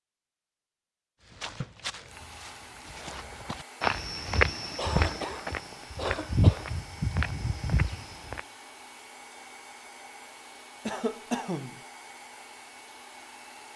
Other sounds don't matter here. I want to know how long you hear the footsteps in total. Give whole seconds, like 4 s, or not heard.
7 s.